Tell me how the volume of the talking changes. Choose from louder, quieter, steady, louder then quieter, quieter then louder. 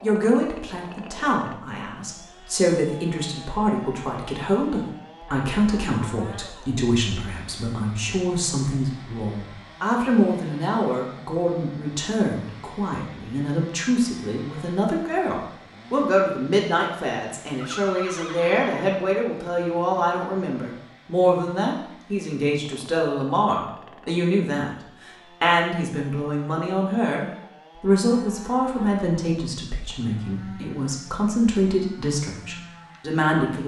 steady.